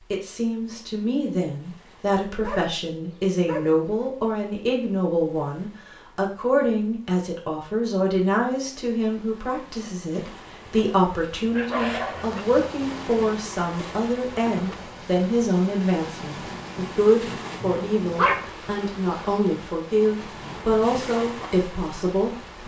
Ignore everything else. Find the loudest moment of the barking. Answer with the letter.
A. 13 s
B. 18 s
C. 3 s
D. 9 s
B.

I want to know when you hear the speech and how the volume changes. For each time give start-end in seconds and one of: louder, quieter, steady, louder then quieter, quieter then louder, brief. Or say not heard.
0.1-22.6 steady.